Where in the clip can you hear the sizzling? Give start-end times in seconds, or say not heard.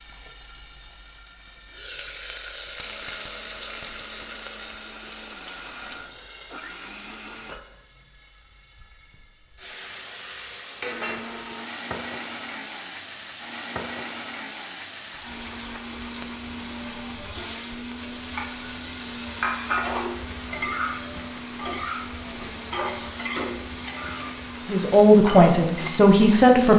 0.0-26.7.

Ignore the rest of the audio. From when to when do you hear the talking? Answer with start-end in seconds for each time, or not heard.
24.6-26.7.